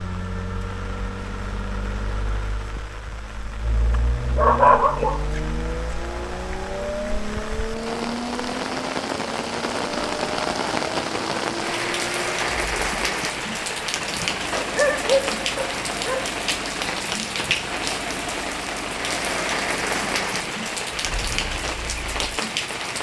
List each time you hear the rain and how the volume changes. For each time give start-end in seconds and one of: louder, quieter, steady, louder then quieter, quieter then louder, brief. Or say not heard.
0.0-22.9 louder.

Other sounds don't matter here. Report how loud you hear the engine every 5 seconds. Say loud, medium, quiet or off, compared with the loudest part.
loud, loud, loud, loud, medium.